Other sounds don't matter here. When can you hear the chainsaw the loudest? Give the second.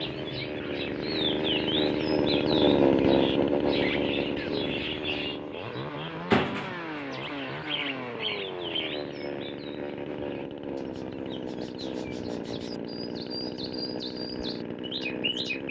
3 s.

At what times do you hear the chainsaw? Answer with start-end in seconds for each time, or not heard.
0.0-15.6.